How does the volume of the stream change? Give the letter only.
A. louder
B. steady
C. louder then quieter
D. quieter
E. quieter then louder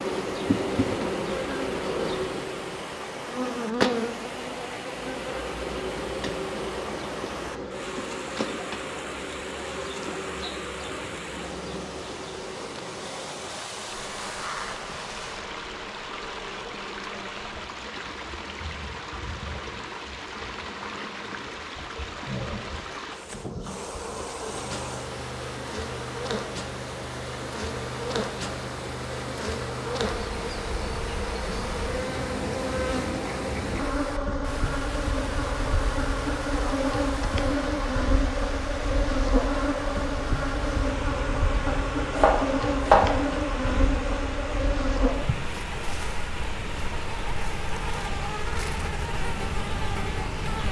B.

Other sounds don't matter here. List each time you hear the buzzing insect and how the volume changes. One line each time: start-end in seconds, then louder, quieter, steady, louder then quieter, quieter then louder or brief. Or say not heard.
0.0-50.6 quieter then louder.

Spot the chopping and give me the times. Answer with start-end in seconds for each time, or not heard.
41.6-43.0.